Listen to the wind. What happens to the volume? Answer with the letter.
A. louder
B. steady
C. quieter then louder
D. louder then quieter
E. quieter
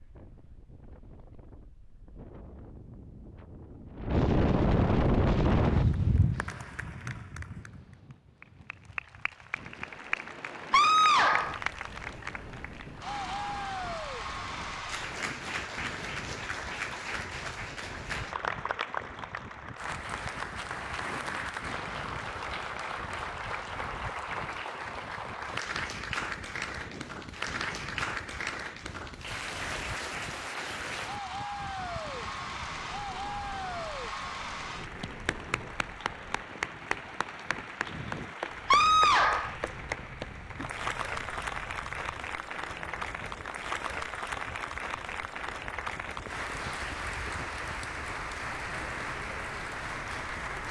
E.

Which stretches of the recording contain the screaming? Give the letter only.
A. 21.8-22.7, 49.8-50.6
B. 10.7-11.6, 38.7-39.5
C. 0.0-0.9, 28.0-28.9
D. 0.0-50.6
B.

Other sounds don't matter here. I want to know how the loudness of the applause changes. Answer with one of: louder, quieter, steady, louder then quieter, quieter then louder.
steady.